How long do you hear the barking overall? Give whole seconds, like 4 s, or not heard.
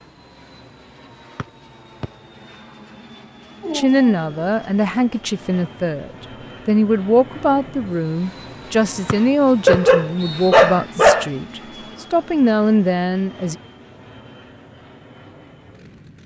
3 s.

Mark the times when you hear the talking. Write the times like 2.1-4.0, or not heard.
3.7-13.6.